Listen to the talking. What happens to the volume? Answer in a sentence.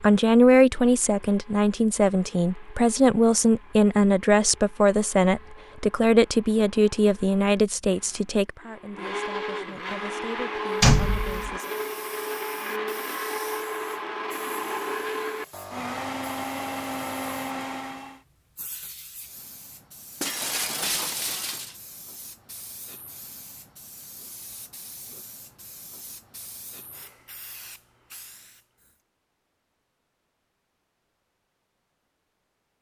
The volume of the talking goes down.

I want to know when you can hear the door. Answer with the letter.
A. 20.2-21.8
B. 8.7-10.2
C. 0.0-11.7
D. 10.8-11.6
D.